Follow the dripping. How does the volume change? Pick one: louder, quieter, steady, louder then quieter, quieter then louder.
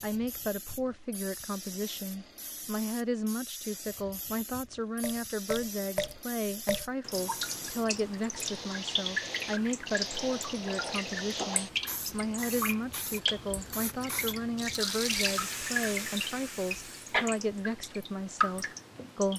steady.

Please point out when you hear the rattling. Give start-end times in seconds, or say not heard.
14.6-15.4.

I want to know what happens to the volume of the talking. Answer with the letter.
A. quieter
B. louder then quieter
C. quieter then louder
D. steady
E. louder
D.